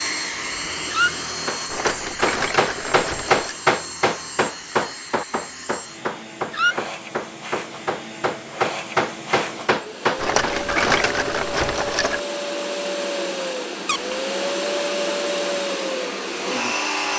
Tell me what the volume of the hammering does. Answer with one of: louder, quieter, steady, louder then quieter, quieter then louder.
quieter then louder.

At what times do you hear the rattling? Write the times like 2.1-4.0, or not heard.
1.6-3.6, 10.2-12.2.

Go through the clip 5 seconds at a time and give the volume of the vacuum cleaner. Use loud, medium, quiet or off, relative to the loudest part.
medium, medium, loud, loud.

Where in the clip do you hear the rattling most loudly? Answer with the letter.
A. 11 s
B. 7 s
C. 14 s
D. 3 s
A.